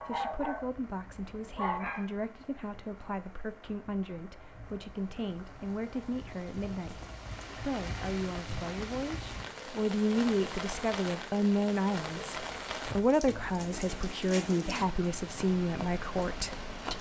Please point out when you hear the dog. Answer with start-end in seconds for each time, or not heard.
0.0-0.7, 1.6-2.1.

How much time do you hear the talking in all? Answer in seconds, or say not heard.
17 s.